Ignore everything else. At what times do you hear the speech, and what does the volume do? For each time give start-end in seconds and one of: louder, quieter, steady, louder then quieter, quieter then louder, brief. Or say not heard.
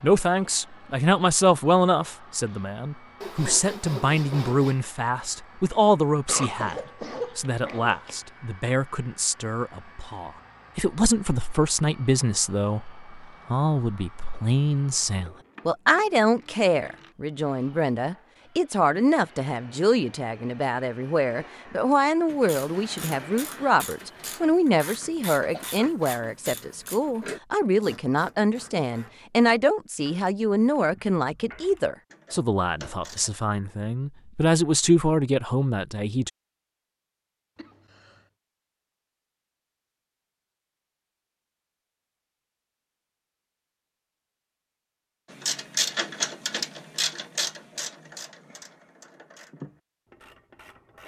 0.0-36.3 steady.